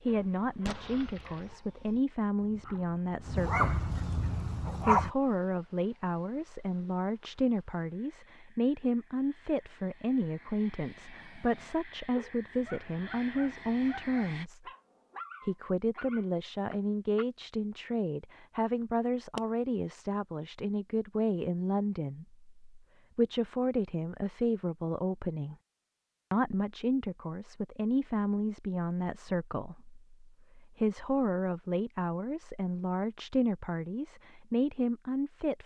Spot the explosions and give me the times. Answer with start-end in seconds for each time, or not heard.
0.7-1.6.